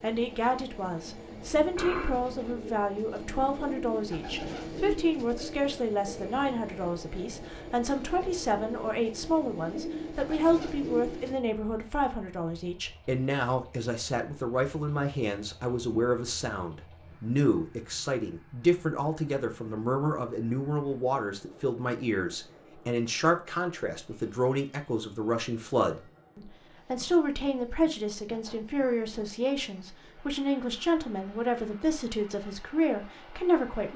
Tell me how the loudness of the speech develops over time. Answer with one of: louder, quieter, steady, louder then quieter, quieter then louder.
steady.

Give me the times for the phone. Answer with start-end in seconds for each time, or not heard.
1.6-2.1.